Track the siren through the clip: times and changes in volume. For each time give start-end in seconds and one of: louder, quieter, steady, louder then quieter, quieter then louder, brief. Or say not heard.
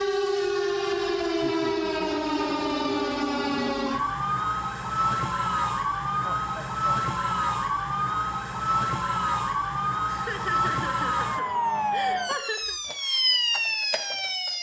0.0-14.5 steady.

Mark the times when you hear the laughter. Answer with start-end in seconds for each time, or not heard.
1.2-2.2, 6.2-7.0, 10.1-12.8.